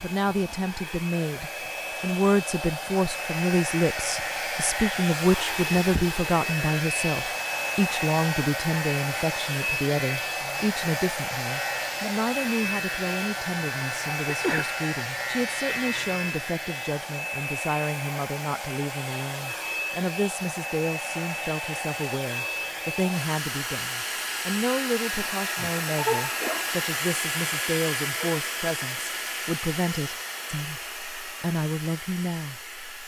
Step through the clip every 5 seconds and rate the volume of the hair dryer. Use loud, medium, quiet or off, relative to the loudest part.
loud, loud, loud, loud, loud, loud, medium.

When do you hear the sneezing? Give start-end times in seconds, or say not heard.
14.2-14.7, 25.2-26.7.